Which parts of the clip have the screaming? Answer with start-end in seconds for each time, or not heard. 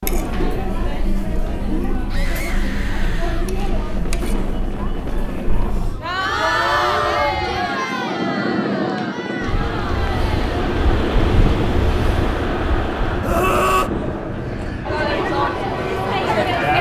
2.1-3.5, 6.8-7.4, 13.2-13.9.